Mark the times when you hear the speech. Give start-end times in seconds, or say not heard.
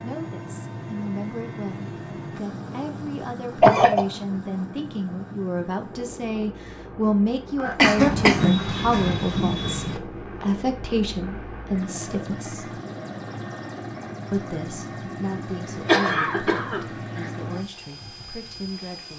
0.0-12.8, 14.3-19.1.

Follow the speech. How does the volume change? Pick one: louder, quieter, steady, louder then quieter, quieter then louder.
louder then quieter.